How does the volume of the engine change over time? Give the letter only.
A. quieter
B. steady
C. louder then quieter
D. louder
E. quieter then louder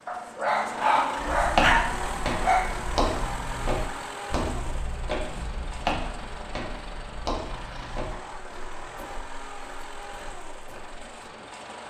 A.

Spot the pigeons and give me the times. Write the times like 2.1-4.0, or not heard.
not heard.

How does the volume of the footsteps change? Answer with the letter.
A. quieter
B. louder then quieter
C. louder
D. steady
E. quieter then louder
A.